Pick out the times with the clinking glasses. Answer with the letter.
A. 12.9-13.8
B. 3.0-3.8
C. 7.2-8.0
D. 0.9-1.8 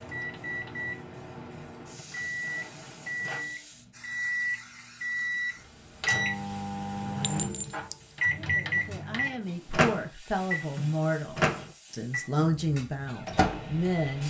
C.